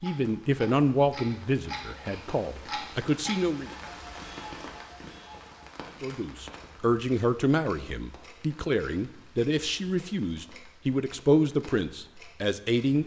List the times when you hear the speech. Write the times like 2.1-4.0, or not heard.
0.0-3.7, 6.0-13.0.